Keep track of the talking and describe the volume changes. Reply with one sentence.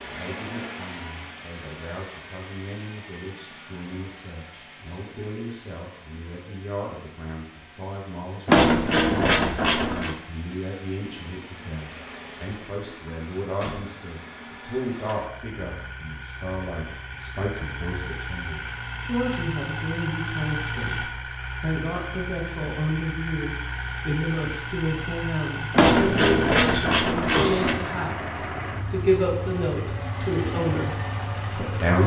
The loudness of the talking goes up.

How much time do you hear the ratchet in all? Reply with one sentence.
The ratchet can be heard for 4 seconds in total.